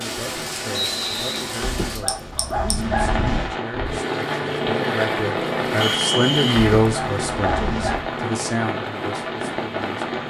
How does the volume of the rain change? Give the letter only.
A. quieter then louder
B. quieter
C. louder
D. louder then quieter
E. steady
E.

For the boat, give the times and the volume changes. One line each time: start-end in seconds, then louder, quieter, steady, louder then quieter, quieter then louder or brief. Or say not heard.
3.7-10.2 quieter.